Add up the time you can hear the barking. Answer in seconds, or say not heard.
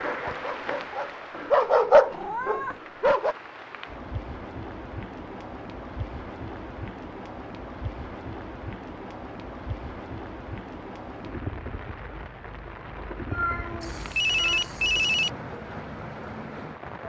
3 s.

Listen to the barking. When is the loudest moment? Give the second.
2 s.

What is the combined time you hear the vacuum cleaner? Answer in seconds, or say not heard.
not heard.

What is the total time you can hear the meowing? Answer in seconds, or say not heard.
2 s.